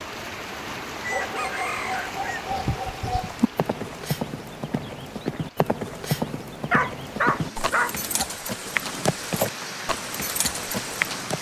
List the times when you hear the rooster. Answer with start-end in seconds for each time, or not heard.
1.0-2.5.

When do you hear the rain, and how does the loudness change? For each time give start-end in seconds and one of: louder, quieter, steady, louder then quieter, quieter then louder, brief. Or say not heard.
0.0-11.3 quieter then louder.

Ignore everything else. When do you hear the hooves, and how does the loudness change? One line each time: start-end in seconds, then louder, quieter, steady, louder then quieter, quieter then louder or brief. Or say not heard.
2.3-11.3 steady.